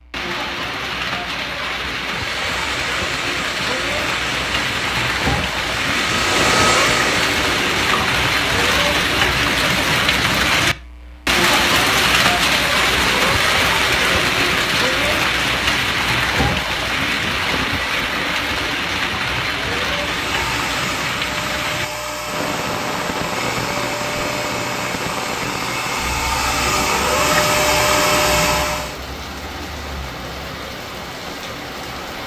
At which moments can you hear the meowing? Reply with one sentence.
You can hear the meowing from 6.3 to 8.2 s, from 12.8 to 14.7 s and from 26.6 to 28.6 s.